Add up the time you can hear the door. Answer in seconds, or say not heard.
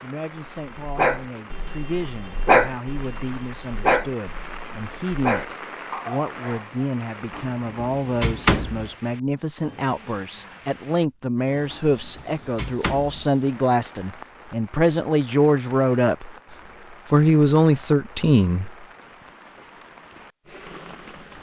3 s.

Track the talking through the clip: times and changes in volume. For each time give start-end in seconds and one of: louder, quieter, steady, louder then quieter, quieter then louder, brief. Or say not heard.
0.0-16.3 louder
17.1-18.7 brief.